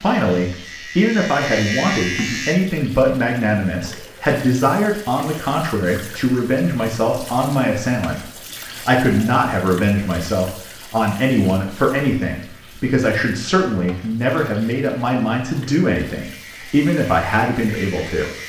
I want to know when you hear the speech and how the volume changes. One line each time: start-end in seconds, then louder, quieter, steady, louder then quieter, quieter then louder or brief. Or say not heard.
0.0-18.3 steady.